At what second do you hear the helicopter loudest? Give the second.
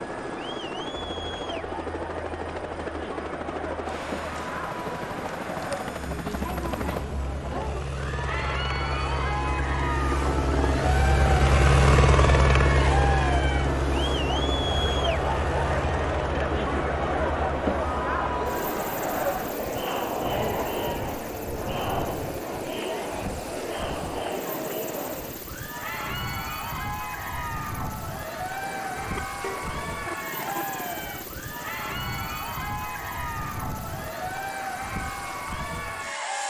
12 s.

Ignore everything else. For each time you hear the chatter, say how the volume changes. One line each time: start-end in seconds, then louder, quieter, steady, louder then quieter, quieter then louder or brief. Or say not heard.
0.0-36.4 louder then quieter.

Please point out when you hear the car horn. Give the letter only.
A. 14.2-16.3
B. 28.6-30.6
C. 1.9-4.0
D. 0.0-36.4
B.